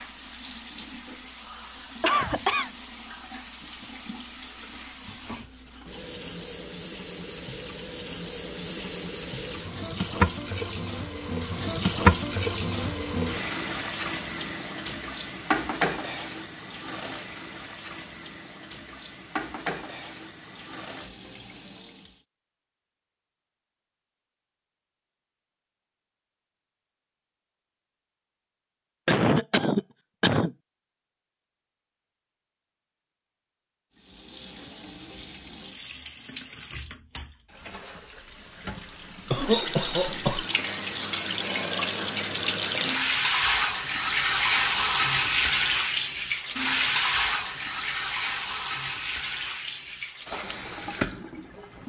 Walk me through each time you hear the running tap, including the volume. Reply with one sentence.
You can hear the running tap from 0.0 to 22.2 s, getting louder then quieter; and from 34.0 to 51.8 s, getting louder then quieter.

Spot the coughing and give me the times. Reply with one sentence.
The coughing can be heard from 2.0 to 2.7 s, from 29.1 to 30.6 s and from 39.3 to 40.5 s.